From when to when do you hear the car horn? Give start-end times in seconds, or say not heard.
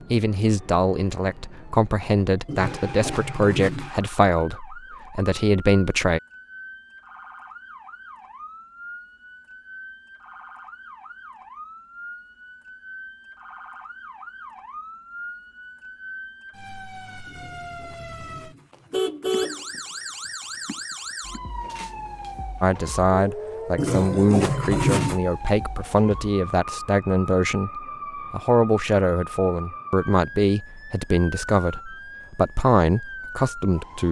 2.5-4.0, 17.2-19.6, 23.8-25.2.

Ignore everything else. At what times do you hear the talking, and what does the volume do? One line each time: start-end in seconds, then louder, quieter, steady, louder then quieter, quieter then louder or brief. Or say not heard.
0.0-6.2 steady
22.6-34.0 steady.